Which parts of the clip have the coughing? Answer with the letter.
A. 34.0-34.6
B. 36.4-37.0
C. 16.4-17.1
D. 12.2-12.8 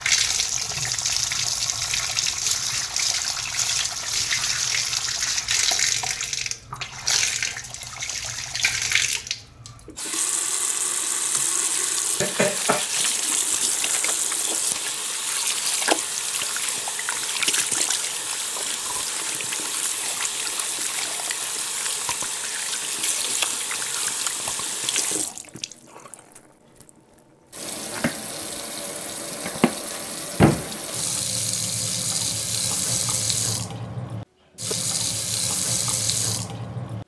D.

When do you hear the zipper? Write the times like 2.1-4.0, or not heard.
not heard.